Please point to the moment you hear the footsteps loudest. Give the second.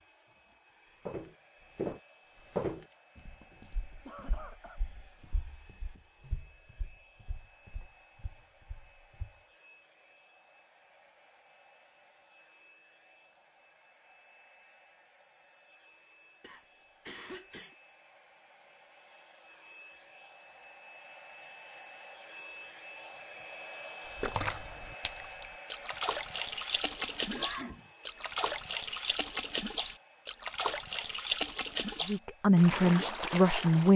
3 s.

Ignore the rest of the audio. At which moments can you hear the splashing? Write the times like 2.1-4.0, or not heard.
24.1-33.9.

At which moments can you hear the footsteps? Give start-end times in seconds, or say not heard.
1.1-9.3.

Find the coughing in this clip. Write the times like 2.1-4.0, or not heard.
3.5-4.8, 16.4-17.8, 27.1-27.9.